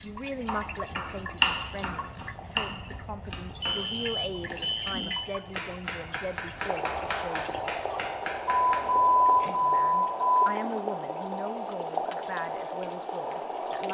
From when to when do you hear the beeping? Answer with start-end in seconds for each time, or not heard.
3.6-5.2, 8.5-10.5.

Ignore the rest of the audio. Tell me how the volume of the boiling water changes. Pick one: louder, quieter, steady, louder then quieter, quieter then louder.
louder.